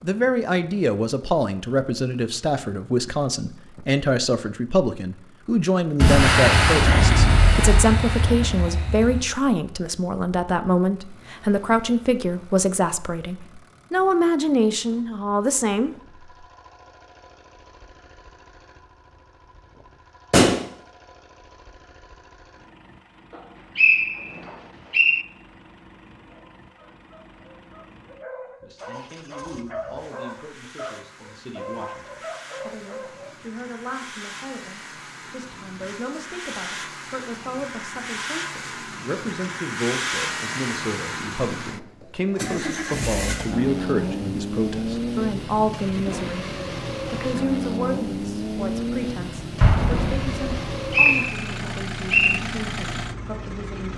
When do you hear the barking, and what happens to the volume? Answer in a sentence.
The barking can be heard from 26.2 to 33.4 s, getting louder.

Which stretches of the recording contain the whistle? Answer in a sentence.
The whistle can be heard from 23.8 to 25.2 s and from 50.5 to 52.4 s.